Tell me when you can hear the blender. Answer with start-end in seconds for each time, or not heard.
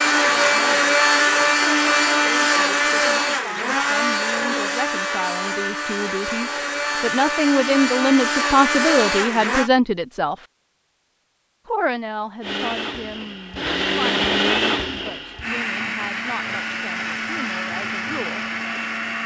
0.0-9.7, 12.4-19.2.